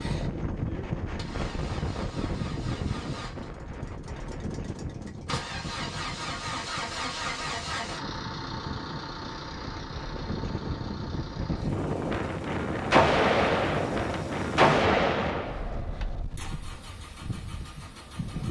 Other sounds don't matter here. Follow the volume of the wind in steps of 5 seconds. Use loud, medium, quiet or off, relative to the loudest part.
loud, medium, loud, medium.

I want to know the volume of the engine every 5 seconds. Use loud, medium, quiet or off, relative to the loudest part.
medium, loud, medium, quiet.